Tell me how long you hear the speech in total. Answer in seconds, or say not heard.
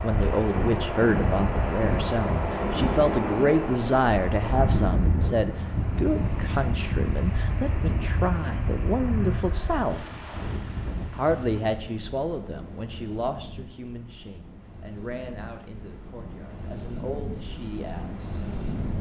17 s.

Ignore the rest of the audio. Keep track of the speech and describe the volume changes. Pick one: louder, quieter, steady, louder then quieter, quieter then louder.
quieter.